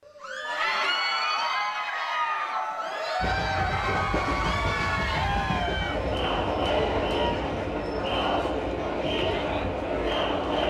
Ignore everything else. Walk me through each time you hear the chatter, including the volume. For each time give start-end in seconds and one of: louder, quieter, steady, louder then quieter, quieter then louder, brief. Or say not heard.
0.1-10.6 steady.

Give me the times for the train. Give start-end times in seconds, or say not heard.
3.2-10.6.